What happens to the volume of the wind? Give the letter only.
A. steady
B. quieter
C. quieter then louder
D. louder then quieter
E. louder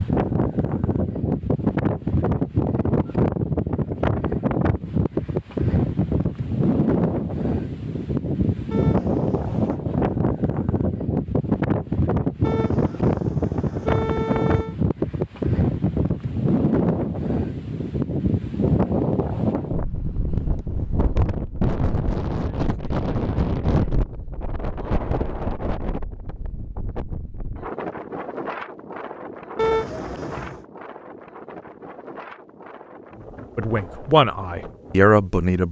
B.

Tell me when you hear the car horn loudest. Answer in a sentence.
The loudest moment of the car horn is at 30 seconds.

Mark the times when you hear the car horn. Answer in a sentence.
You can hear the car horn from 8.7 to 9.8 s, from 12.4 to 14.8 s and from 29.6 to 30.6 s.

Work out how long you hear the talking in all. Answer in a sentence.
The talking can be heard for 2 seconds in total.